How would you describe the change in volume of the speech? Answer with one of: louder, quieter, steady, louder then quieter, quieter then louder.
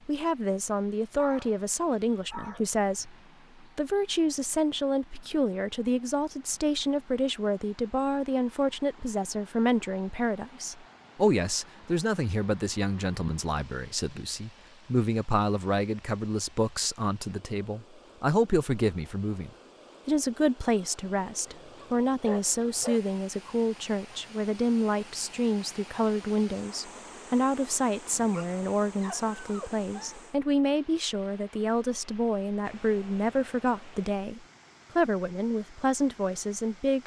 steady.